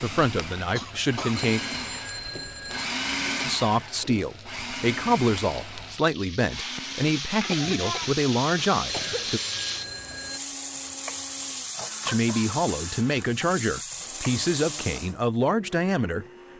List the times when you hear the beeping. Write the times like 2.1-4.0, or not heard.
1.4-2.9, 8.8-10.4.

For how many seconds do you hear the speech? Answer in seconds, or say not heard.
12 s.